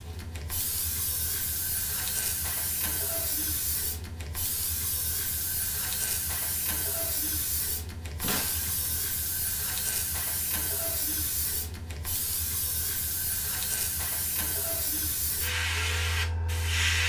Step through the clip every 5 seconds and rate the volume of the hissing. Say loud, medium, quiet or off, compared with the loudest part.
medium, medium, medium, loud.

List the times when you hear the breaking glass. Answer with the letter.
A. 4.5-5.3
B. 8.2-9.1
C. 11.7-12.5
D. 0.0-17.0
B.